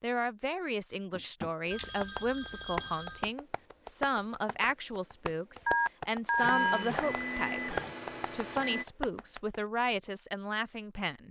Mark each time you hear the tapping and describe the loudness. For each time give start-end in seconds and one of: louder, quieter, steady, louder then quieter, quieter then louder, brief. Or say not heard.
1.1-9.6 quieter then louder.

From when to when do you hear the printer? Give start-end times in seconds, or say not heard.
6.3-8.8.